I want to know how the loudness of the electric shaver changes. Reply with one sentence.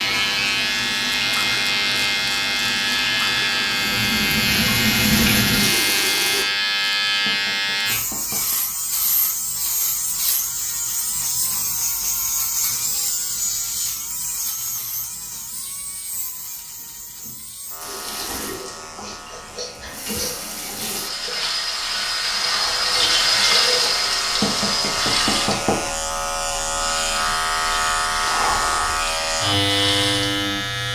The volume of the electric shaver goes down, then up.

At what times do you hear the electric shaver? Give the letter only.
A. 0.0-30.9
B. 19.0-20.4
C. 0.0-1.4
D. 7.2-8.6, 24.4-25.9
A.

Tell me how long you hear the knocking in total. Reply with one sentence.
You can hear the knocking for 3 seconds altogether.